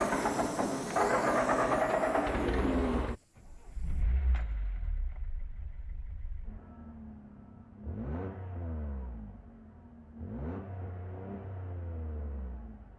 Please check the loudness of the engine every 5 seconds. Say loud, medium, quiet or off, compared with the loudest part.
loud, quiet, quiet.